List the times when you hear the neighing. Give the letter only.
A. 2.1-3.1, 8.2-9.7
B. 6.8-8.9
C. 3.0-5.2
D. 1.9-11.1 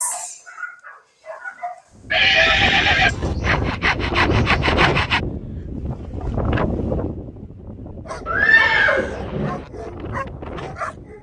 A.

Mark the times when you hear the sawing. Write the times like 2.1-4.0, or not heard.
3.0-5.2.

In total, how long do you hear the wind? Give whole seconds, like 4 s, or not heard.
9 s.